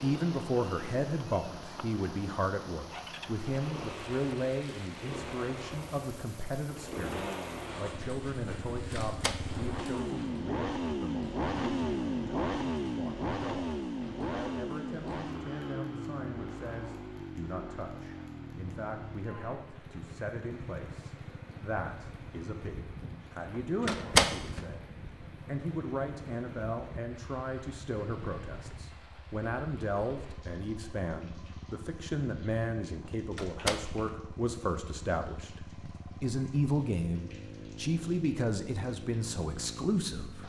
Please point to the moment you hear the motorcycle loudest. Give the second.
12 s.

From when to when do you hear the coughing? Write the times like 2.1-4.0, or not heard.
not heard.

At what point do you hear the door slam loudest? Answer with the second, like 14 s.
24 s.